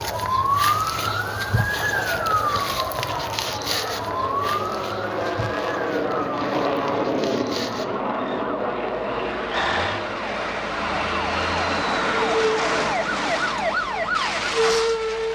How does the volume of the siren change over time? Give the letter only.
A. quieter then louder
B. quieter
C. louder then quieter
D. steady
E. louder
A.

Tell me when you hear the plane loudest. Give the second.
7 s.